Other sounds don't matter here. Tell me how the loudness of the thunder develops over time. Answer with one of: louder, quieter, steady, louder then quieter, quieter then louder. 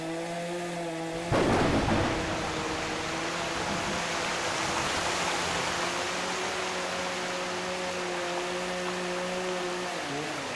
quieter.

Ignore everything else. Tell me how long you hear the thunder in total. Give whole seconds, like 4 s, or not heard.
5 s.